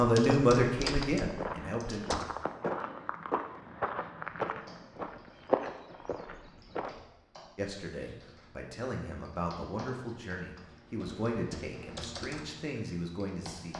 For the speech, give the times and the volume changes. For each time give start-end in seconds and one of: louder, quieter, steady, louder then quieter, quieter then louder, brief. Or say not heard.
0.0-2.0 brief
7.5-13.7 steady.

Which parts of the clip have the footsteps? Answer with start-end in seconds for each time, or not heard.
0.2-7.0.